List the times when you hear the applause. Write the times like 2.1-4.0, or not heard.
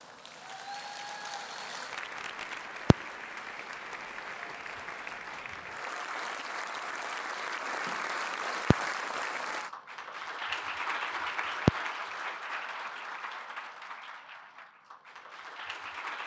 0.0-16.2.